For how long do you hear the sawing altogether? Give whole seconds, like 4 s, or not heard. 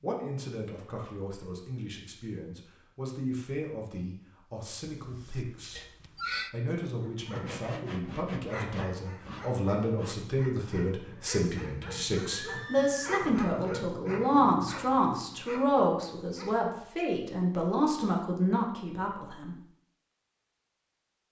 3 s.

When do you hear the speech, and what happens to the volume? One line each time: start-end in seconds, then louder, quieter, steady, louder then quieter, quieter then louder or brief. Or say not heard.
0.0-19.6 louder.